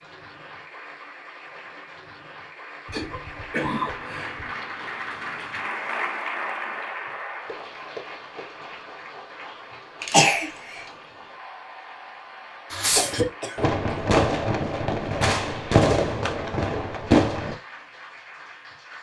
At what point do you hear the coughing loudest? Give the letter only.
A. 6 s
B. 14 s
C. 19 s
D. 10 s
D.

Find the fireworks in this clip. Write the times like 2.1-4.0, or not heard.
12.7-17.6.